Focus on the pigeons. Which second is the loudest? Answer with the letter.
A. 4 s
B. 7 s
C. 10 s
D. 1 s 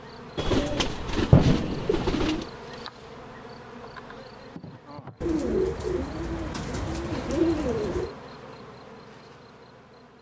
D.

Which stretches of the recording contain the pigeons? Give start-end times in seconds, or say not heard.
0.3-2.5, 5.2-8.2.